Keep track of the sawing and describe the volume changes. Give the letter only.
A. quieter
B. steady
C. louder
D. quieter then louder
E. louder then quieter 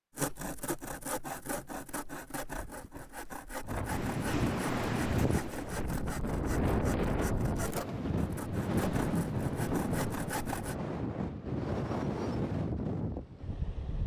B.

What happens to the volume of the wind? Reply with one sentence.
The loudness of the wind stays about the same.